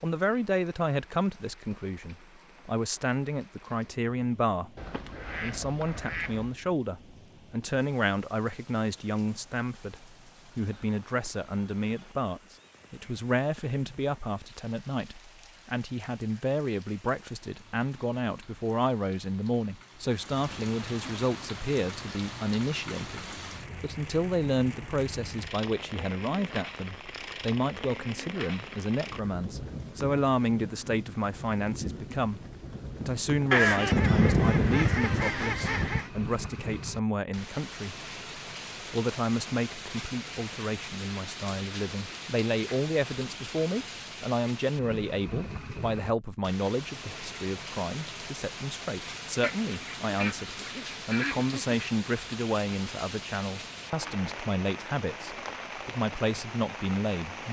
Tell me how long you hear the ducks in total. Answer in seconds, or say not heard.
7 s.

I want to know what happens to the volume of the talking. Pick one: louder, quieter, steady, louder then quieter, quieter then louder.
steady.